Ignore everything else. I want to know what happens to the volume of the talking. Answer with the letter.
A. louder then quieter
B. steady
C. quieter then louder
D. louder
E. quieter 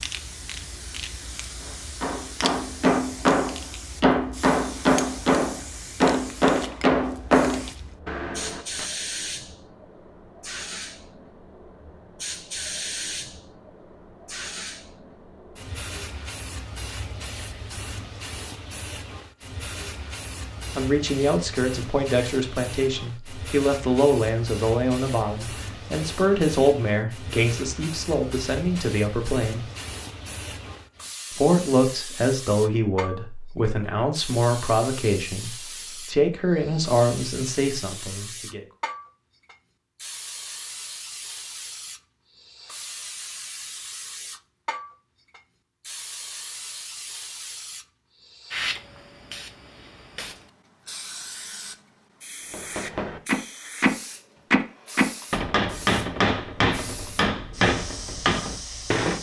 B.